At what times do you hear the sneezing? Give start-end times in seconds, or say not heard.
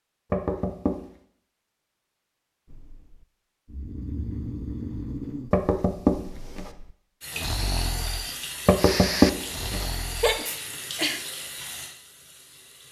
10.2-11.2.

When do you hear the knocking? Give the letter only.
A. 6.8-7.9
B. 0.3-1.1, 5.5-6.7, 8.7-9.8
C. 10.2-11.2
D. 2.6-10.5
B.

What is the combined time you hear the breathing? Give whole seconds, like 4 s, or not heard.
8 s.